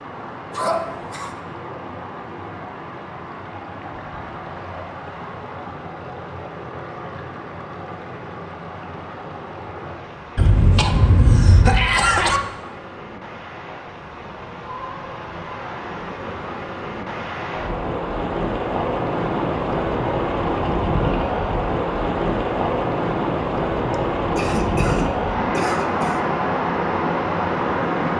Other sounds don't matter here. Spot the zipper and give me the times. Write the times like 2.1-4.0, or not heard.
not heard.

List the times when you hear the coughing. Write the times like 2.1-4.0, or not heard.
0.6-1.4, 10.3-12.4, 23.9-26.2.